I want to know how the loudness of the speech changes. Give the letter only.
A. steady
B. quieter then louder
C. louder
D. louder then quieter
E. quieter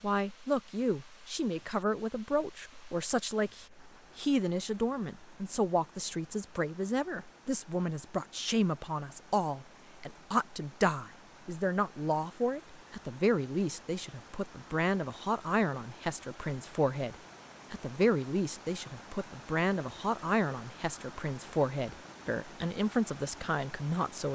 A.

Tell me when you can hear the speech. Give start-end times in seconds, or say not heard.
0.0-24.3.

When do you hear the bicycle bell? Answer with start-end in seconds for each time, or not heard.
not heard.